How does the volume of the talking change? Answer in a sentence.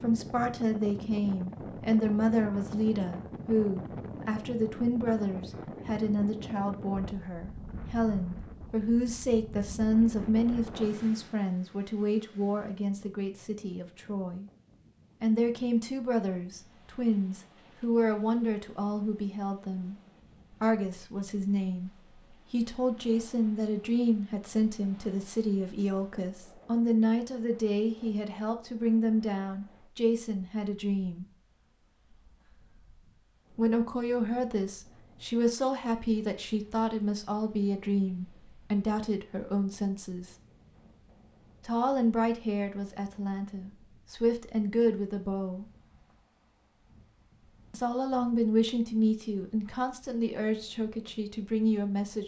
The volume of the talking stays about the same.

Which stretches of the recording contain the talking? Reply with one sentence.
You can hear the talking from 0.0 to 14.4 s, from 15.2 to 31.2 s, from 33.5 to 40.4 s, from 41.6 to 45.6 s and from 47.7 to 52.2 s.